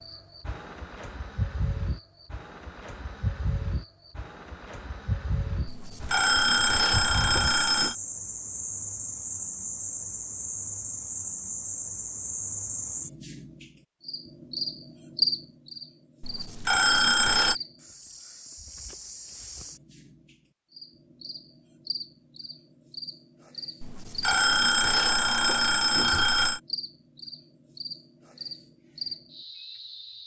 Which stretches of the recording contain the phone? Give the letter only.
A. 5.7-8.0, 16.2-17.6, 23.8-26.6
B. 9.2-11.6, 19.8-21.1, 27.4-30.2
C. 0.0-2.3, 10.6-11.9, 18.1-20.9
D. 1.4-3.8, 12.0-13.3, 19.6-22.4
A.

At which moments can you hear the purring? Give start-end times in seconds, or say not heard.
not heard.